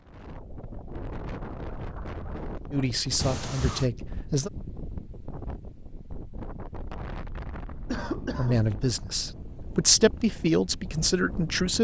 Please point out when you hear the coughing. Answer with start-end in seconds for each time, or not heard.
3.1-3.9, 7.8-8.6.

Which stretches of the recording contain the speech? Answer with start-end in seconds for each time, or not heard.
2.7-4.5, 8.3-11.7.